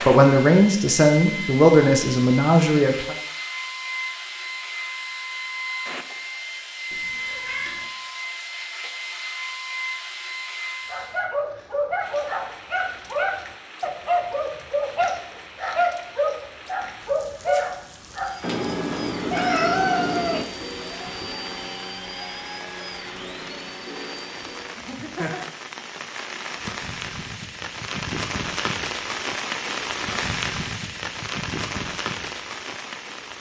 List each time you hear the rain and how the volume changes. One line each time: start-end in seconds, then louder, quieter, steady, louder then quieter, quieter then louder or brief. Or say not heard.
11.9-33.3 louder.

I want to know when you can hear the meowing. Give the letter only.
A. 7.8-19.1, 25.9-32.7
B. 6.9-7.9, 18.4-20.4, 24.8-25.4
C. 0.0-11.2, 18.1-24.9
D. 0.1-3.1
B.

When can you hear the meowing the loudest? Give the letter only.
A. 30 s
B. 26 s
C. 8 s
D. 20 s
D.